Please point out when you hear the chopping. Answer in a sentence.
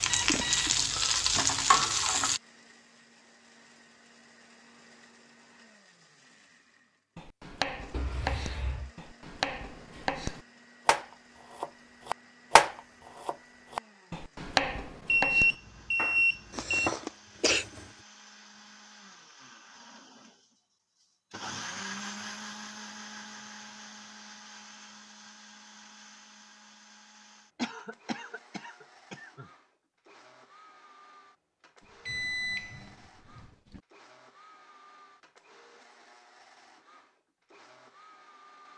The chopping can be heard from 7.2 to 17.9 s.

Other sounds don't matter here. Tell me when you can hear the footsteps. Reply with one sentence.
You can't hear the footsteps here.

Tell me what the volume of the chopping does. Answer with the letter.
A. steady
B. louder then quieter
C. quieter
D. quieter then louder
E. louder
B.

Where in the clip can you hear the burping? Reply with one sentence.
The burping can't be heard in this clip.